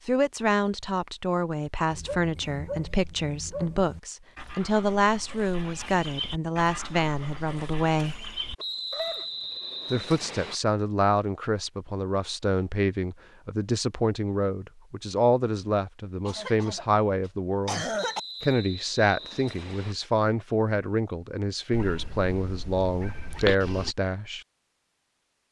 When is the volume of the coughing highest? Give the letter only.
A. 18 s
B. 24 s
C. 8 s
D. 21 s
A.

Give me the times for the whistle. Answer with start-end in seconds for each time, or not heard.
8.6-10.6, 17.9-19.9.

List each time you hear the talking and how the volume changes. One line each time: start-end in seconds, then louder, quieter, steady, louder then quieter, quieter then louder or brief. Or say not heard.
0.1-8.2 steady
9.9-24.4 steady.